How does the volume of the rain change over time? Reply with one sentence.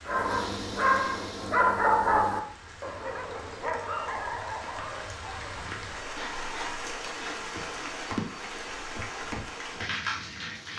The volume of the rain goes up.